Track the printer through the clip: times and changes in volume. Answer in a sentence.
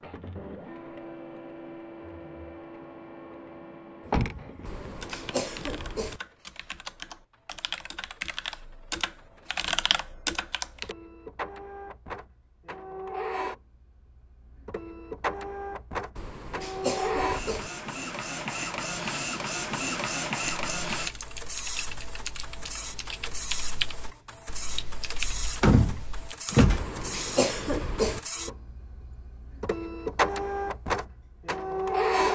The printer can be heard from 0.0 to 32.3 s, getting louder.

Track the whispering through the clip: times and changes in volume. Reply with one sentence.
You can't hear the whispering here.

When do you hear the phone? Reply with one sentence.
The phone can't be heard in this clip.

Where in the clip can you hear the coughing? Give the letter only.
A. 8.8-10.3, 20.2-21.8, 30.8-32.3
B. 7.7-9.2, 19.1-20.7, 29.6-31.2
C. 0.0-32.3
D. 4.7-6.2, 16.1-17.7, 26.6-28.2
D.